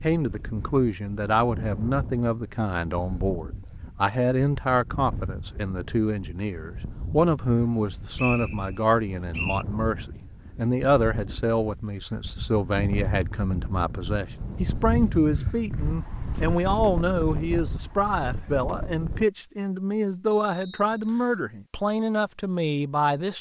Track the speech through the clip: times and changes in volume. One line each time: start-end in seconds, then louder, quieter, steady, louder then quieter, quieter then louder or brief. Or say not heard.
0.0-23.3 steady.